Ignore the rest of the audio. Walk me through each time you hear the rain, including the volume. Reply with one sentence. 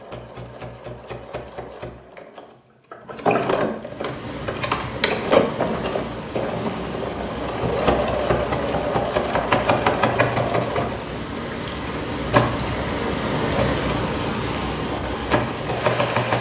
You can hear the rain from 3.8 to 16.3 s, getting louder.